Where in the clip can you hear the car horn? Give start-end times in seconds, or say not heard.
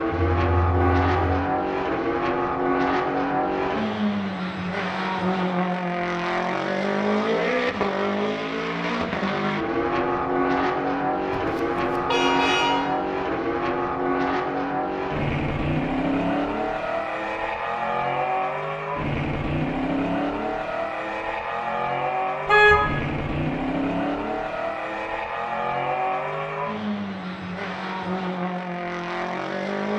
0.1-1.4, 11.3-12.9, 22.4-22.9.